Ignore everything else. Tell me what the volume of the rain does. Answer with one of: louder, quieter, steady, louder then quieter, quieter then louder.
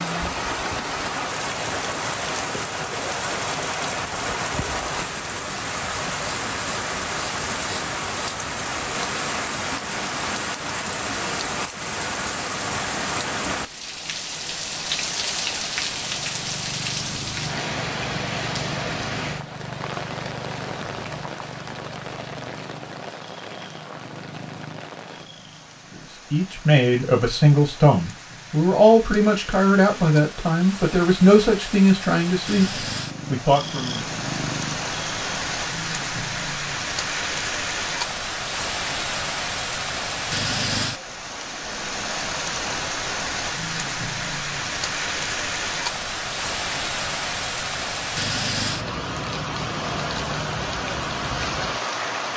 quieter then louder.